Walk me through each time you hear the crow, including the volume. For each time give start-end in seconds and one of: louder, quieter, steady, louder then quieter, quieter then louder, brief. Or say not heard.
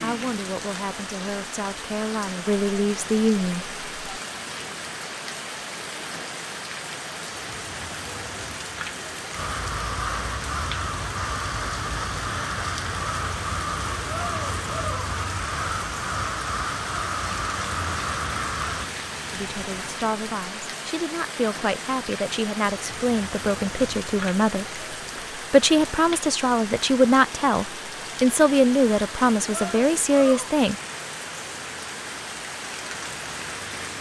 9.3-18.9 steady.